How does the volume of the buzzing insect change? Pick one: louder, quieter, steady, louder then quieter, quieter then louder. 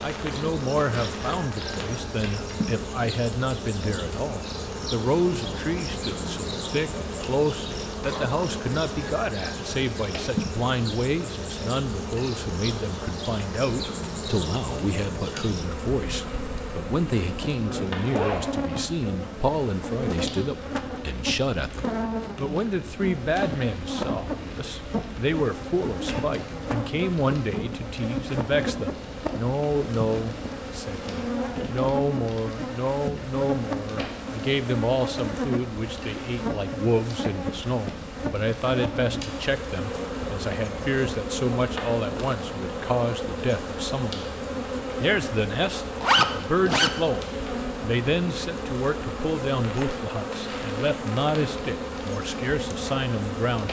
steady.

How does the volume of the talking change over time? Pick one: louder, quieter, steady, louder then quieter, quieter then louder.
steady.